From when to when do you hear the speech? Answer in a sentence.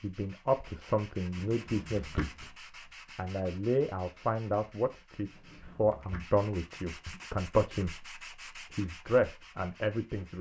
The speech can be heard from 0.0 to 2.5 s and from 3.1 to 10.3 s.